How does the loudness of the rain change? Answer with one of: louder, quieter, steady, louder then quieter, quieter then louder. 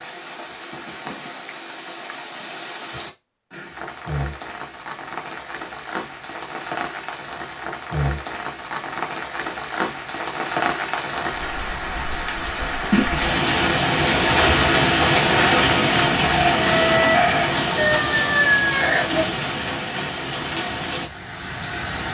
louder then quieter.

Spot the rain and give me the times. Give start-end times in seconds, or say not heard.
0.0-22.1.